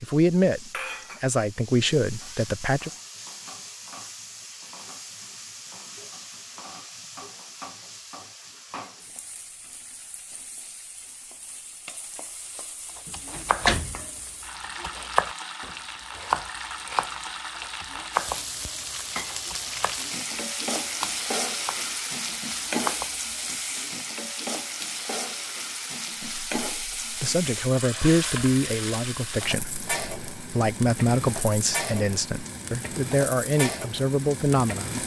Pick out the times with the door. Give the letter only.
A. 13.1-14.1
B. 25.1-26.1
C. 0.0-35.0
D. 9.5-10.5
A.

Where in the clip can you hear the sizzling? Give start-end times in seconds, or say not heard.
0.0-35.0.